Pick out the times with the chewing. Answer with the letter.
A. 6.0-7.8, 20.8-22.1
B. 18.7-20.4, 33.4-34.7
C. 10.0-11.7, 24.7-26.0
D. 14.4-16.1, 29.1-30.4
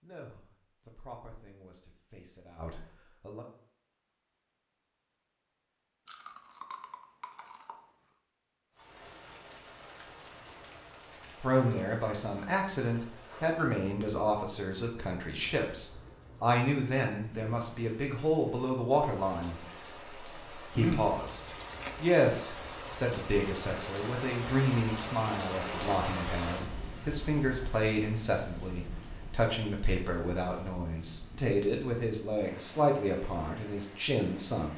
A.